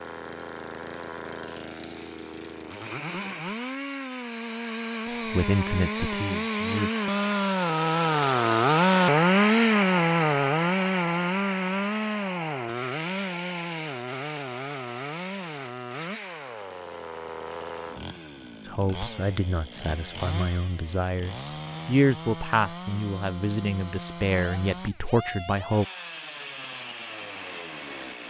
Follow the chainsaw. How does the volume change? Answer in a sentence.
The loudness of the chainsaw goes up, then down.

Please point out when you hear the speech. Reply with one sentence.
You can hear the speech from 5.3 to 6.9 s and from 18.6 to 25.9 s.